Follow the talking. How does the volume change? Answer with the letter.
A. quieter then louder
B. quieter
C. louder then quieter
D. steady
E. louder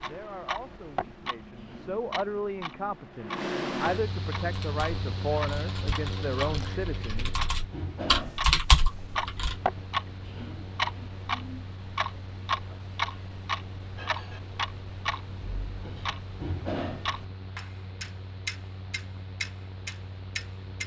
E.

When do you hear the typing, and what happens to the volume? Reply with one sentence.
You can hear the typing from 4.5 to 9.6 s, getting louder.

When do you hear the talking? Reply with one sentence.
The talking can be heard from 0.0 to 7.3 s.